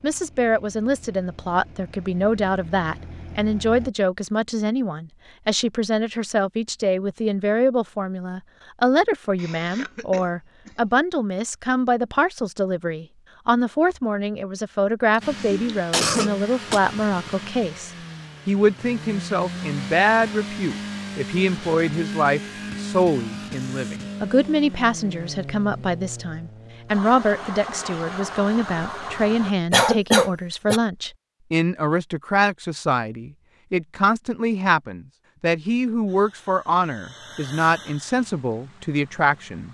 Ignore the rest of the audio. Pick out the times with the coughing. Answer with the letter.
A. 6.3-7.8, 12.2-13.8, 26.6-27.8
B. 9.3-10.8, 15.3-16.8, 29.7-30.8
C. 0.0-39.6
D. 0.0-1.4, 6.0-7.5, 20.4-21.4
B.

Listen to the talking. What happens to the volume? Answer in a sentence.
The volume of the talking stays about the same.